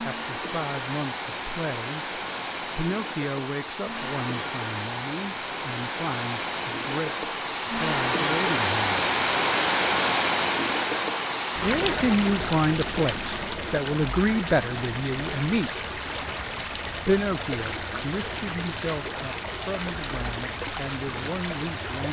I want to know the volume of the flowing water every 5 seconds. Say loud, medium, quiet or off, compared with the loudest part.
medium, loud, loud, medium, medium.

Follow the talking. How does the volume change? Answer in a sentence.
The volume of the talking goes up, then down.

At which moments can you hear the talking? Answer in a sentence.
The talking can be heard from 0.0 to 9.1 s, from 11.6 to 15.7 s and from 17.1 to 22.0 s.